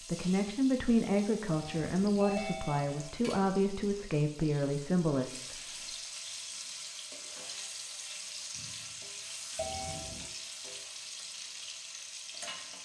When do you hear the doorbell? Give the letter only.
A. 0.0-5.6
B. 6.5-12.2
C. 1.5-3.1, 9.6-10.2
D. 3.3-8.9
C.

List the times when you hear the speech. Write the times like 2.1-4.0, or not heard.
0.0-5.6.